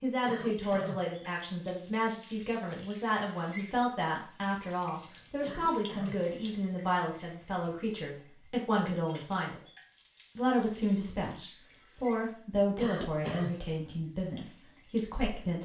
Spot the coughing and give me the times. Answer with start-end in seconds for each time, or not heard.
0.2-1.1, 5.4-6.2, 12.8-13.6.